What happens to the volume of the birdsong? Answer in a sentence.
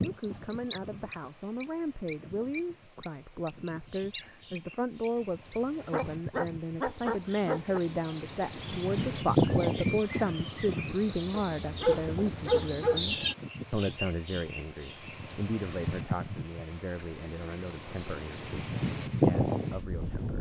The loudness of the birdsong goes down, then up.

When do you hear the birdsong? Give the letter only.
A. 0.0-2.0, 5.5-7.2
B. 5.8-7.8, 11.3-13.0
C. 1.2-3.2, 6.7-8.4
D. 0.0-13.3
D.